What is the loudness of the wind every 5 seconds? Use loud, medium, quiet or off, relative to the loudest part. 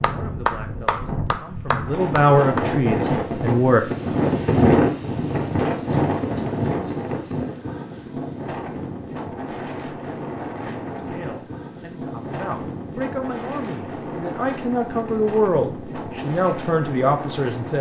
loud, loud, medium, medium.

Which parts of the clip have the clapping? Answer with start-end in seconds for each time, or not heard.
0.0-2.8.